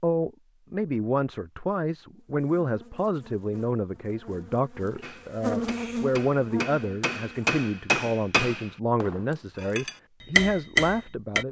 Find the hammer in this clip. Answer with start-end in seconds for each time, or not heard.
5.0-11.4.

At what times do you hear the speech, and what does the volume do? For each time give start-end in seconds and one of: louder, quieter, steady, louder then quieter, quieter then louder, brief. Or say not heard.
0.0-11.4 steady.